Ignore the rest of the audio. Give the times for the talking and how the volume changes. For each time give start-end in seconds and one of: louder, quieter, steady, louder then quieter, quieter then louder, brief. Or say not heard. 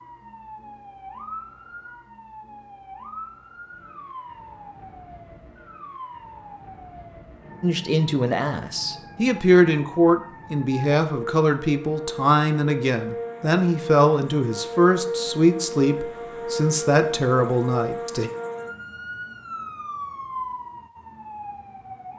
7.6-18.3 steady.